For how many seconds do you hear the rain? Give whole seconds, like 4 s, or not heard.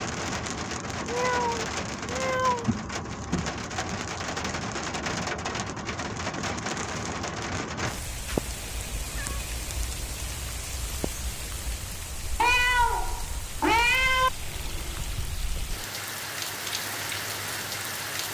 18 s.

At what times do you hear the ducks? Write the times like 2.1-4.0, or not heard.
not heard.